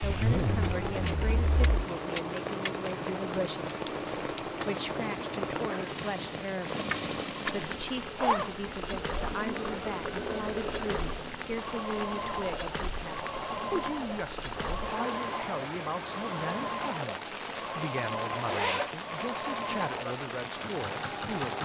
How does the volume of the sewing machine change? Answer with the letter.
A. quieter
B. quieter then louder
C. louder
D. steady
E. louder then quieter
D.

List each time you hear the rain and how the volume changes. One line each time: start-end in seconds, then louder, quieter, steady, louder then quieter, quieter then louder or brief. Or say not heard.
0.0-21.6 steady.